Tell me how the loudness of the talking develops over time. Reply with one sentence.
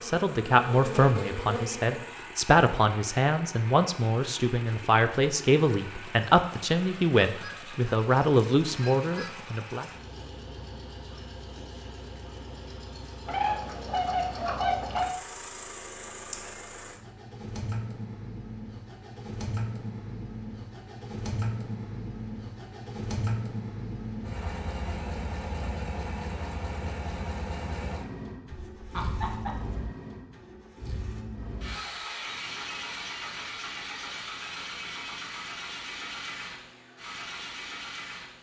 The volume of the talking stays about the same.